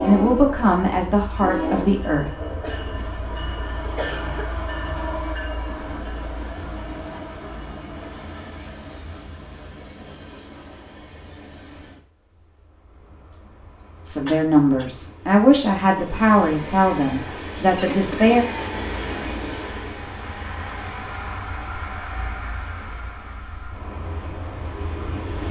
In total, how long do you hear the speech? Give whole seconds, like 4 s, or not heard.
7 s.